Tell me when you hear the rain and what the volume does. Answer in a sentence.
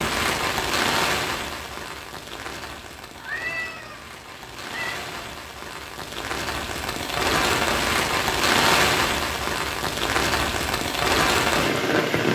You can hear the rain from 0.0 to 12.3 s, getting quieter then louder.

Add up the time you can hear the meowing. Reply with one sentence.
You can hear the meowing for 2 seconds altogether.